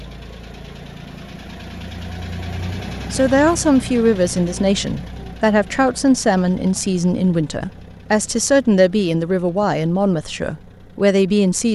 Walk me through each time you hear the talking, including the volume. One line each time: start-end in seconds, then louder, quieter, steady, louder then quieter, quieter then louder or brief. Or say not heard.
3.1-11.6 steady.